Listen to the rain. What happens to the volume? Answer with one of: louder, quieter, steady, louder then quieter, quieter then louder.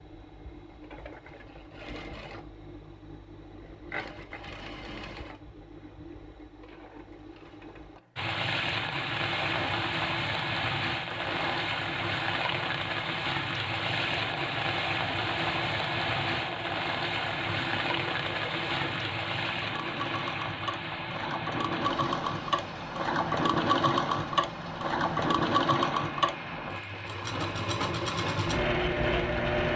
quieter.